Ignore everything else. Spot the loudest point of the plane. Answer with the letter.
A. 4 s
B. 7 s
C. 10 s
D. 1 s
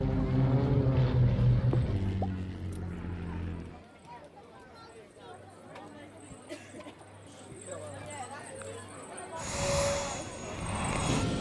D.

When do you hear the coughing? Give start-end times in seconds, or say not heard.
1.7-2.5.